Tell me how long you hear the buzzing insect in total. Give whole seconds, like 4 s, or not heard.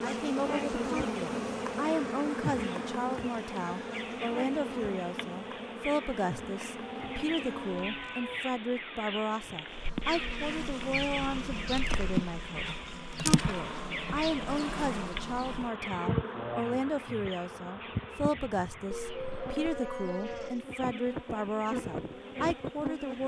22 s.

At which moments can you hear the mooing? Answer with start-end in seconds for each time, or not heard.
6.8-8.4, 18.9-20.6.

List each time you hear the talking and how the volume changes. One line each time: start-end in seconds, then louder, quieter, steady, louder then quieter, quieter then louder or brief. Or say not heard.
0.0-23.2 steady.